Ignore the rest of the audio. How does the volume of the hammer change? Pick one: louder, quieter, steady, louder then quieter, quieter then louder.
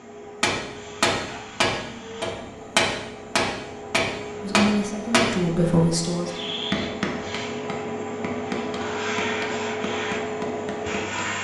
quieter.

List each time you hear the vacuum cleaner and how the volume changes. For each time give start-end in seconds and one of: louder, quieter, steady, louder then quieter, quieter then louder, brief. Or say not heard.
0.0-11.3 louder.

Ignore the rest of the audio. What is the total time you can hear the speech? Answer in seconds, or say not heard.
2 s.